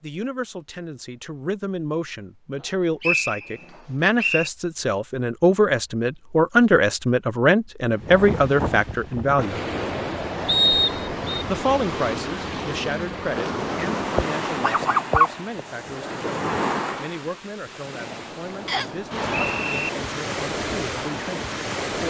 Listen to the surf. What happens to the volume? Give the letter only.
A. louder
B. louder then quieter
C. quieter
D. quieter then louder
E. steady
E.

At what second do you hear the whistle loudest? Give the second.
11 s.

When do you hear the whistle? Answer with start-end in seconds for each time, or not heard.
3.0-4.5, 10.4-11.4, 18.6-19.9.